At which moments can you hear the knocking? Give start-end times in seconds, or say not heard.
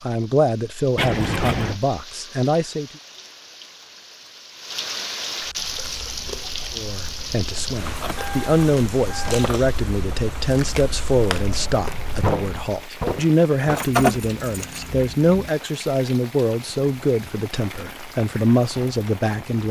12.2-13.8.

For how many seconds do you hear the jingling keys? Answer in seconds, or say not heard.
5 s.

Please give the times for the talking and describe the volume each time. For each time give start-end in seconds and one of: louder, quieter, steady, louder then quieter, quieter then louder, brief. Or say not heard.
0.0-2.9 brief
6.8-19.6 steady.